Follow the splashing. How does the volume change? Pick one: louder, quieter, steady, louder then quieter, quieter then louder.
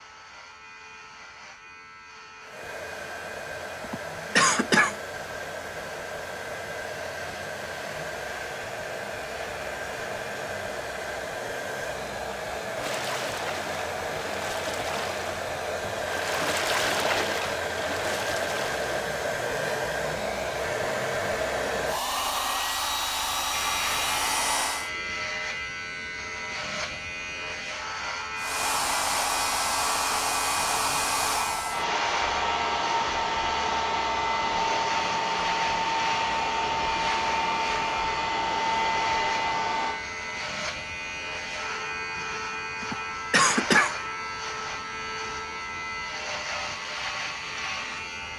louder then quieter.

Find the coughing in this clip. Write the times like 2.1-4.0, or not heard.
3.8-5.0, 42.8-44.0.